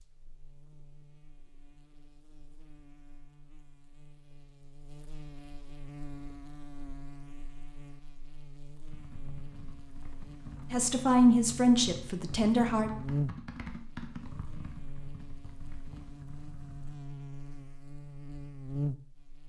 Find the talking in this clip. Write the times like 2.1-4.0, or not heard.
10.7-12.9.